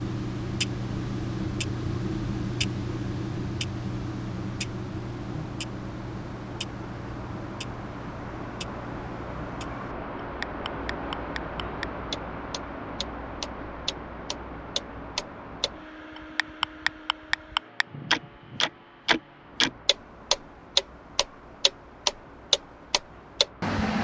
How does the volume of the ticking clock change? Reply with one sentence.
The loudness of the ticking clock goes down, then up.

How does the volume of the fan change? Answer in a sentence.
The loudness of the fan goes up, then down.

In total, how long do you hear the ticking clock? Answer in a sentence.
The ticking clock can be heard for 24 seconds in total.